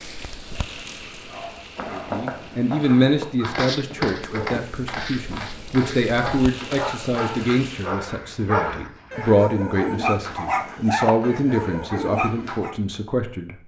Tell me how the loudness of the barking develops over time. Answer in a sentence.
The volume of the barking goes up.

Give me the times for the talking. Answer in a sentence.
You can hear the talking from 1.9 to 13.6 s.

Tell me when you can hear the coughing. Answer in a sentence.
The coughing can't be heard in this clip.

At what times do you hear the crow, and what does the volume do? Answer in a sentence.
The crow can't be heard in this clip.